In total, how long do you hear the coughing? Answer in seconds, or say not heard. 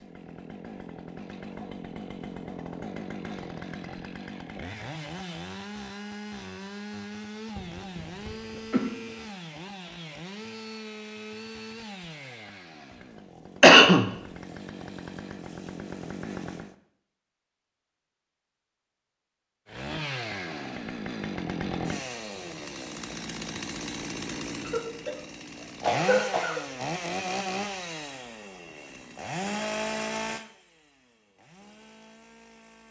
3 s.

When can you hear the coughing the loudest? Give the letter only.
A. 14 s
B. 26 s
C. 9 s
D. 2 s
A.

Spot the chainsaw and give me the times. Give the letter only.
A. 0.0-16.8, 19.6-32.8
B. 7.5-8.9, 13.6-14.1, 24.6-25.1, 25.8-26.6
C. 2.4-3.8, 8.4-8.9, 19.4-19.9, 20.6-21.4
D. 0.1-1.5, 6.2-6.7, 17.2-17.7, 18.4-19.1
A.